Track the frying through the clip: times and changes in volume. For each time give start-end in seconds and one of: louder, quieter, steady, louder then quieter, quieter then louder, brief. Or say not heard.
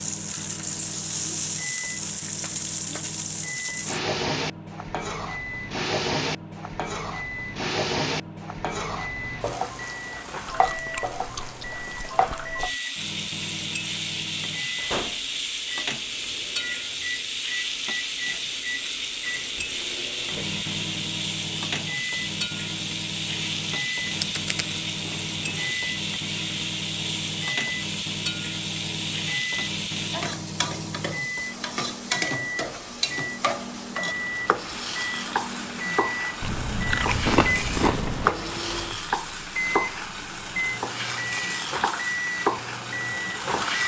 0.0-43.8 steady.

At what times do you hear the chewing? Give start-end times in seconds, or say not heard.
10.4-12.8, 24.1-25.8, 36.4-38.4.